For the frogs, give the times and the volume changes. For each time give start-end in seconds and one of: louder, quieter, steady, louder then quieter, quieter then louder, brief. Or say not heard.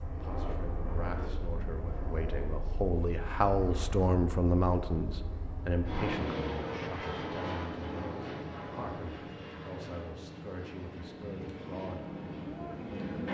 not heard.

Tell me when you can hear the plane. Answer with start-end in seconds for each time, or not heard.
0.0-13.3.